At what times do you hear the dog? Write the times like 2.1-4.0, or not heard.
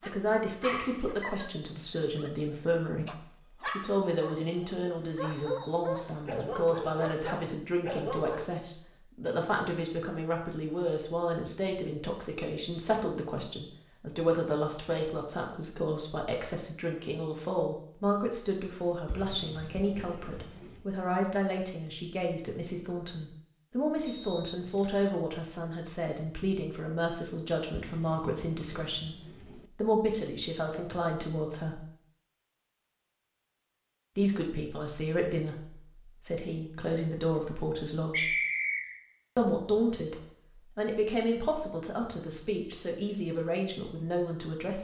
0.0-8.4.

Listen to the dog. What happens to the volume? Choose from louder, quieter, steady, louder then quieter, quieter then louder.
quieter then louder.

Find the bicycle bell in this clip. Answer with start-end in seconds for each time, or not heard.
not heard.